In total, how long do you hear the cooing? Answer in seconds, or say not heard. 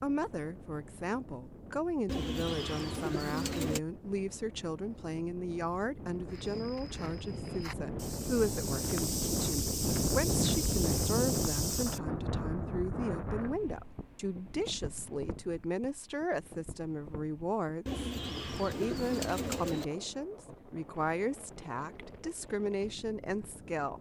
4 s.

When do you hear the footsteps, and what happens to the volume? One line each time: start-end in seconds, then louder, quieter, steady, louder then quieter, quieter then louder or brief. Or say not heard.
6.2-12.0 louder.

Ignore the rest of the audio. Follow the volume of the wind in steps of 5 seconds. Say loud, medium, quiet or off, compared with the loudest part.
quiet, loud, loud, quiet, quiet.